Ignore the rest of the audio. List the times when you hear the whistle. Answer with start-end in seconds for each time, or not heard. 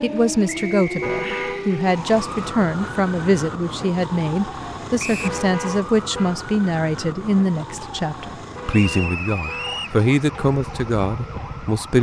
0.5-1.6, 5.0-5.4, 8.7-10.0.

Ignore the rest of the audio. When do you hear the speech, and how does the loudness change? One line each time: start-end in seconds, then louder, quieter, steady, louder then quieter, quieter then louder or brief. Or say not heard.
0.0-11.9 steady.